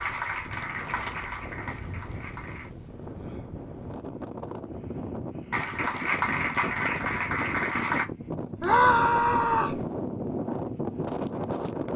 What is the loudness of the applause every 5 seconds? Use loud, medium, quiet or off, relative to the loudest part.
medium, loud, off.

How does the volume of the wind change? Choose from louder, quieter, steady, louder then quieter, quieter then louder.
louder.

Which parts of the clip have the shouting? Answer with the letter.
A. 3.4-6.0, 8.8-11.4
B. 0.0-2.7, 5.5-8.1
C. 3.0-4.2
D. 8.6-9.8
D.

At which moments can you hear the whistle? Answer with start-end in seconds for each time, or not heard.
not heard.